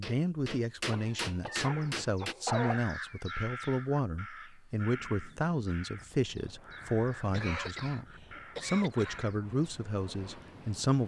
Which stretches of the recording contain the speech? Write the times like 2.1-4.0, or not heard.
0.0-11.0.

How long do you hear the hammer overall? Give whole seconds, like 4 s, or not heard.
2 s.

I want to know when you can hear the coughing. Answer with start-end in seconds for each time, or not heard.
0.9-2.8, 7.2-9.2.